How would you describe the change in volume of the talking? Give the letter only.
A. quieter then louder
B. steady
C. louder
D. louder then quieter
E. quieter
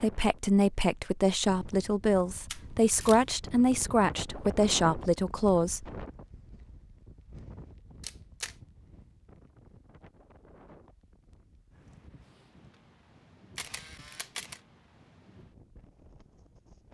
B.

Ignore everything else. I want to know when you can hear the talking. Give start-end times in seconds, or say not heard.
0.0-6.0.